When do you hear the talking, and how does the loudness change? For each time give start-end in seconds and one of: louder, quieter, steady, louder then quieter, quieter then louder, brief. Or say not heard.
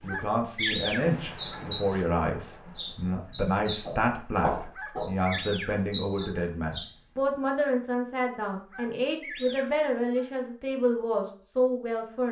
0.0-12.2 steady.